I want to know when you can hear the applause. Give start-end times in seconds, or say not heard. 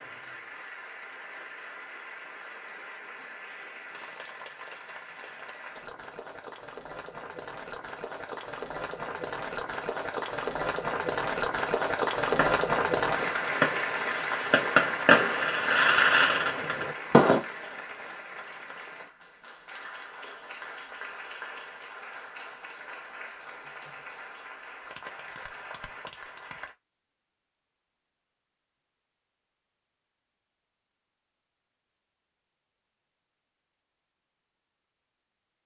0.0-26.8.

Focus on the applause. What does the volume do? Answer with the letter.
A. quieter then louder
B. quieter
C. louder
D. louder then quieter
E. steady
D.